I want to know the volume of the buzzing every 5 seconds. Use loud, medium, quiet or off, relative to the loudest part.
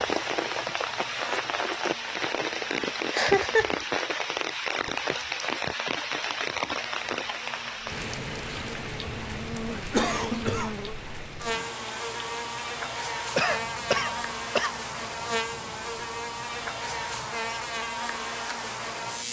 medium, medium, loud, loud.